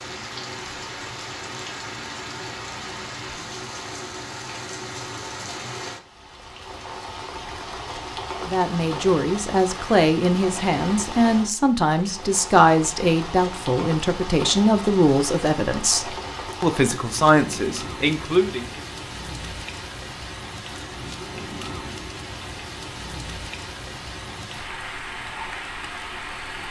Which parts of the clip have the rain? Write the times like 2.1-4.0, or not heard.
0.0-26.6.